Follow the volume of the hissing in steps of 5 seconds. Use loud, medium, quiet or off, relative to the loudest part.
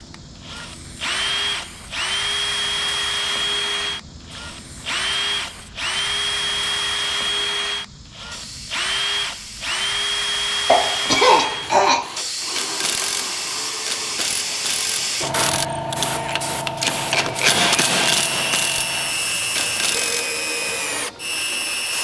quiet, quiet, loud, loud, quiet.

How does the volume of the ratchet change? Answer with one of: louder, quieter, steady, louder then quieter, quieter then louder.
louder then quieter.